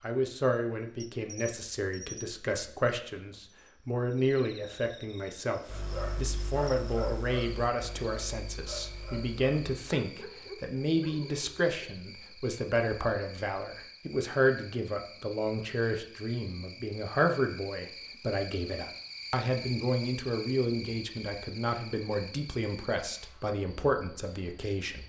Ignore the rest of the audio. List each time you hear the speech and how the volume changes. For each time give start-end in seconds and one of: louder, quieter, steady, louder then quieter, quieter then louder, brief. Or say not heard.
0.0-25.0 steady.